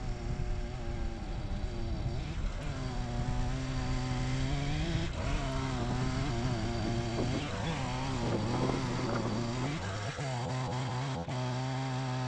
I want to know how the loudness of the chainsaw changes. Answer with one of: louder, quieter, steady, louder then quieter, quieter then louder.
louder.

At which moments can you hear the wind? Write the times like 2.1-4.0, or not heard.
0.0-10.1.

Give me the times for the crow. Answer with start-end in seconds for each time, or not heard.
not heard.